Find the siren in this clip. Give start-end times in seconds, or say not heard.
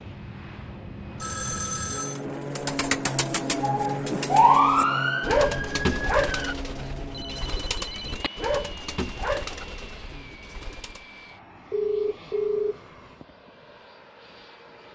3.6-6.5.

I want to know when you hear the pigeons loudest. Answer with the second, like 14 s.
5 s.